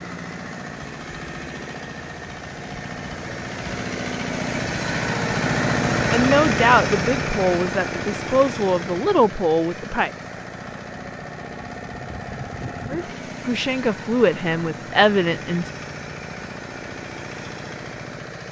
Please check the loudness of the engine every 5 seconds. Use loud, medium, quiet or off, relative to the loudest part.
medium, loud, medium, medium.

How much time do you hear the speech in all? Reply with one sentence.
The speech can be heard for 7 seconds in total.